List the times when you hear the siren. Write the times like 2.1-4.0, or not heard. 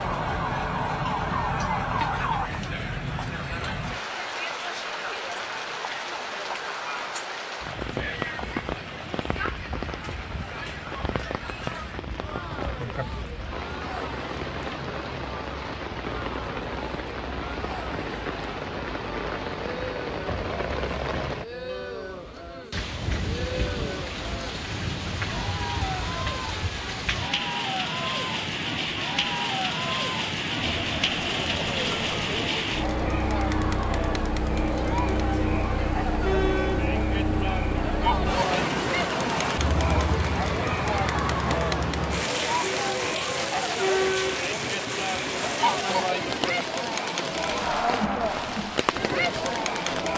0.0-2.5.